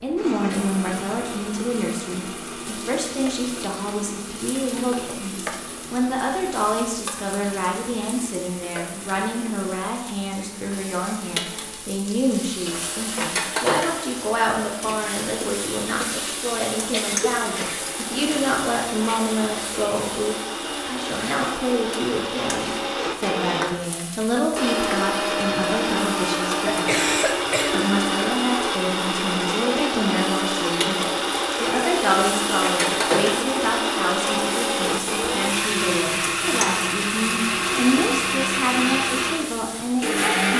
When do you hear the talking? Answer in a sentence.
You can hear the talking from 0.0 to 40.5 s.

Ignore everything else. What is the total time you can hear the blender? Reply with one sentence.
You can hear the blender for 40 seconds altogether.